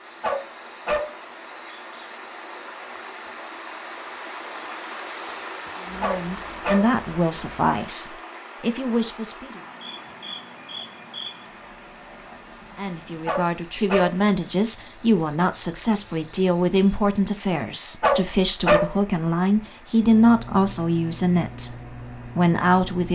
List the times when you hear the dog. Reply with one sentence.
You can hear the dog from 0.2 to 1.1 s, from 6.0 to 6.9 s, from 13.2 to 14.2 s and from 18.0 to 18.9 s.